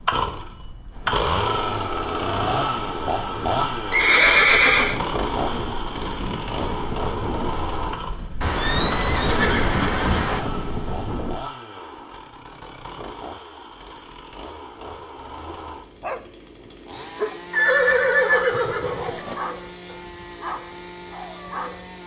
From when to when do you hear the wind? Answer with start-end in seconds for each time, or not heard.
0.0-11.4.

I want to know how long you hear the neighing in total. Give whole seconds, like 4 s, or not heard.
5 s.